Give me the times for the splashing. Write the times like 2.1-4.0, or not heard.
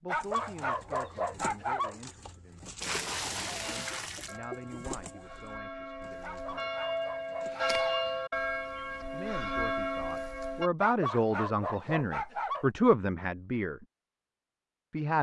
2.8-4.3.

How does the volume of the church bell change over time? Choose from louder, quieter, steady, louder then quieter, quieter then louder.
louder.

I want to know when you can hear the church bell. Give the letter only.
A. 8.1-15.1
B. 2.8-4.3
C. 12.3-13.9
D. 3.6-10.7
D.